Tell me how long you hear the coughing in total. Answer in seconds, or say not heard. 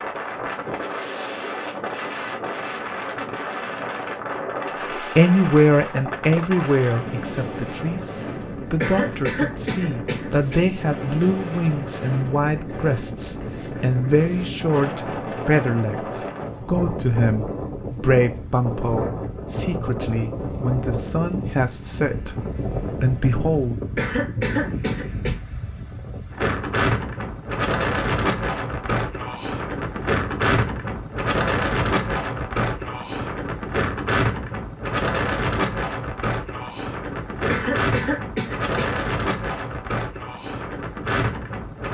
5 s.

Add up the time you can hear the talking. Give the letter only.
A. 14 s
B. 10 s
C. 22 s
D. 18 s
D.